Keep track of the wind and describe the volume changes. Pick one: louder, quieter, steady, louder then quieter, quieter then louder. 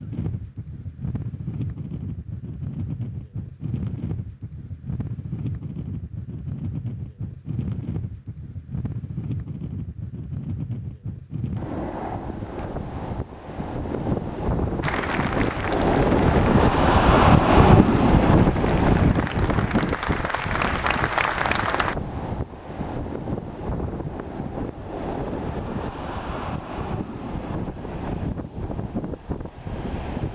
louder then quieter.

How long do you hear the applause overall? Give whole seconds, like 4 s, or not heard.
7 s.